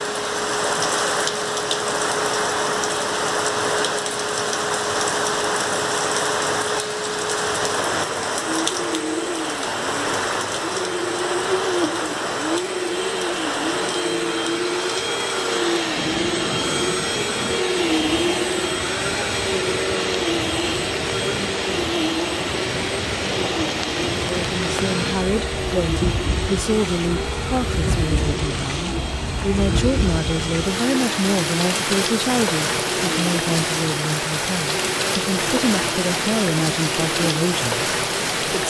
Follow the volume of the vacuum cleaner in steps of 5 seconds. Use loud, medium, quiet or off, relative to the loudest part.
medium, medium, loud, loud, loud, medium, medium, medium.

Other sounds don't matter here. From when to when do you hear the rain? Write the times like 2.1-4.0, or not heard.
0.0-38.6.